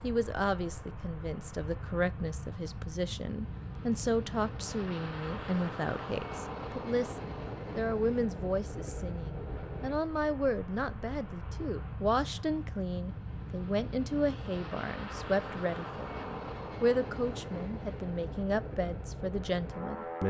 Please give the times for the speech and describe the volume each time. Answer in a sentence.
You can hear the speech from 0.0 to 20.2 s, at a steady volume.